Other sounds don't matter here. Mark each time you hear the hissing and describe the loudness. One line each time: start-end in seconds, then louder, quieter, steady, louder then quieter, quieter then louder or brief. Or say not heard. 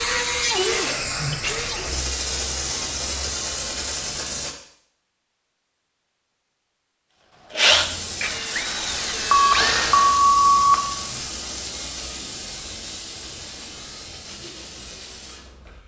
0.0-4.5 steady
7.7-15.8 quieter.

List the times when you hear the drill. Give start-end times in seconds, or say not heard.
0.0-1.9, 7.5-10.2.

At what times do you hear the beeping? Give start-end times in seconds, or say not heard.
9.3-10.8.